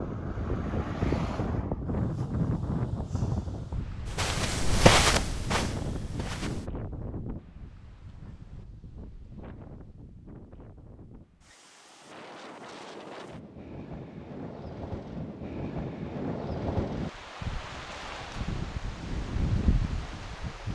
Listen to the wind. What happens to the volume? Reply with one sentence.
The loudness of the wind goes down, then up.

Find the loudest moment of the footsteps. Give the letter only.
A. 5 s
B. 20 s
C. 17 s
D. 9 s
A.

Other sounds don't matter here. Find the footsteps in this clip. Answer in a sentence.
The footsteps can be heard from 4.0 to 6.7 s.